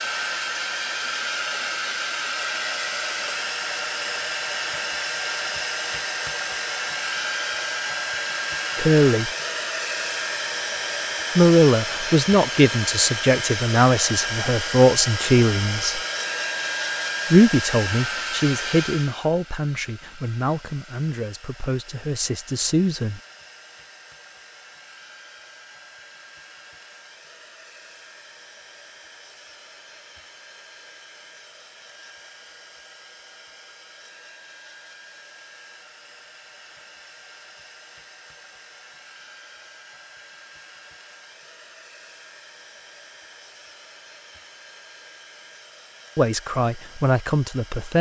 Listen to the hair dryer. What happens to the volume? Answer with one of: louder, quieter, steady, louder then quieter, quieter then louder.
quieter.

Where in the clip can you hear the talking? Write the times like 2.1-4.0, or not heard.
8.8-9.3, 11.3-16.0, 17.3-23.2, 46.1-47.9.